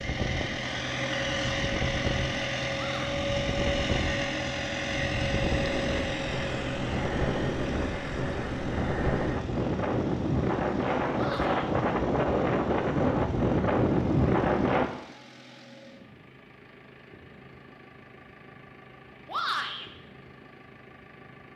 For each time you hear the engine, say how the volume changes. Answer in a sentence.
The engine can be heard from 0.0 to 21.5 s, getting quieter.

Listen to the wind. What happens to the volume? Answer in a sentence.
The volume of the wind goes up.